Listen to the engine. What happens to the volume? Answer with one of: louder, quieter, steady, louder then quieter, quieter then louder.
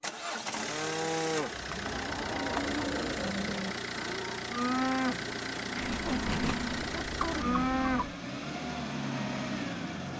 steady.